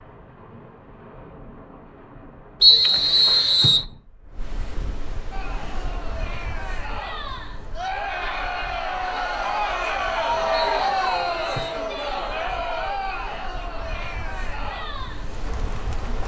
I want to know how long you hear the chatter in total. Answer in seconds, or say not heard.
11 s.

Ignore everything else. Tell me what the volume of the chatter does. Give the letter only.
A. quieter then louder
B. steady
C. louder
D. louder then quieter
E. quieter
D.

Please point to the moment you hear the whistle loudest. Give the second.
3 s.